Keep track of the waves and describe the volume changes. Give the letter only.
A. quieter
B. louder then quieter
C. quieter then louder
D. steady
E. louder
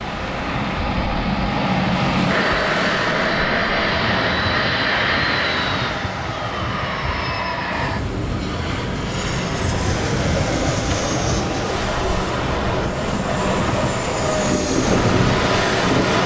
E.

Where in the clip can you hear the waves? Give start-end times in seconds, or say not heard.
0.0-16.2.